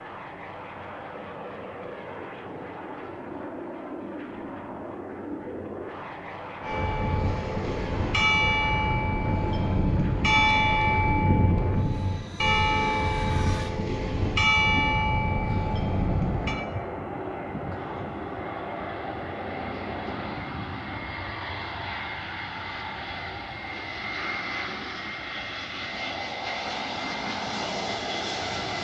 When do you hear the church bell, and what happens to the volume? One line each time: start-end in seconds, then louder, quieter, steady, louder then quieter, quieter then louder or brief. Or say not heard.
6.6-16.6 steady.